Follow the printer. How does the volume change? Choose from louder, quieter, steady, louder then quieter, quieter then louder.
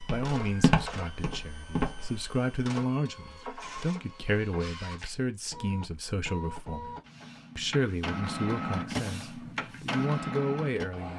louder.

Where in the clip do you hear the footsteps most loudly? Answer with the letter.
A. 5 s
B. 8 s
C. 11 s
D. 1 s
D.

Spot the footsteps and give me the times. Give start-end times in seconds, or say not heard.
0.0-2.2.